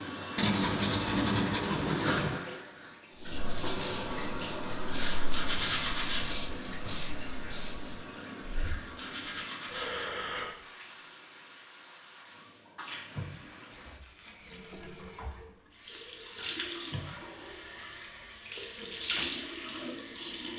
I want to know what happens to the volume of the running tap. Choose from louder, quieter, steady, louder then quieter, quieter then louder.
quieter then louder.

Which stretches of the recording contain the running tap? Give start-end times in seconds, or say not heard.
0.0-20.5.